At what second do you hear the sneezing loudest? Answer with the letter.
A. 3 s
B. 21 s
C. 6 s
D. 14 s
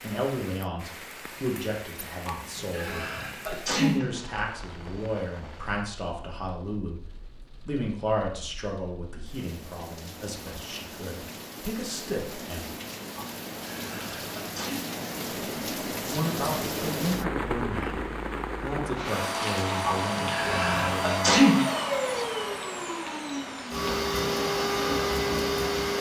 B.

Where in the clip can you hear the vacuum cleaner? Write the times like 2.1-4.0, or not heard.
19.0-25.9.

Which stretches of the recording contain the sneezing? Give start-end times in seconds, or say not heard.
2.2-4.2, 13.2-14.8, 19.8-21.6.